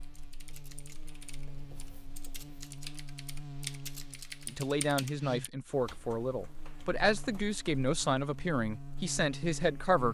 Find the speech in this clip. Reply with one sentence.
You can hear the speech from 4.5 to 10.1 s.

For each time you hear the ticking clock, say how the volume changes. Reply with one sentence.
You can't hear the ticking clock here.